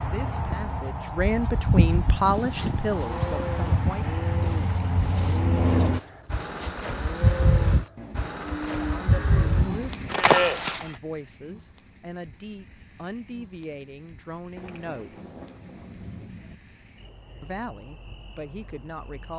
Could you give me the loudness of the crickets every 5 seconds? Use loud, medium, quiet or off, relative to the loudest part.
loud, loud, quiet, quiet.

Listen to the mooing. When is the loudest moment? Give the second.
10 s.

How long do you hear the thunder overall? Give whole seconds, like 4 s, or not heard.
2 s.